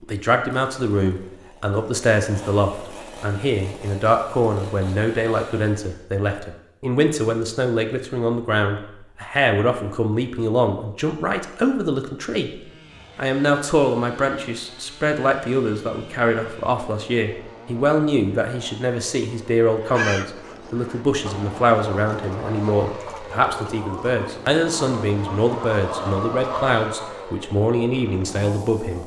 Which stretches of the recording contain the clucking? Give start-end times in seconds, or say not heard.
19.7-27.2.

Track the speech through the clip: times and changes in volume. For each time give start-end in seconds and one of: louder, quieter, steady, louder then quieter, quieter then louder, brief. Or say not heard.
0.0-12.5 steady
13.2-29.0 steady.